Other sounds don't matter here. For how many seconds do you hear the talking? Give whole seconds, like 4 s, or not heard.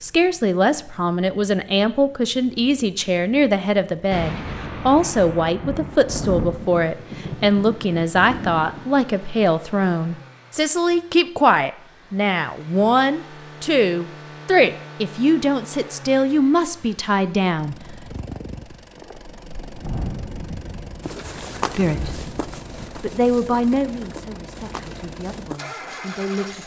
22 s.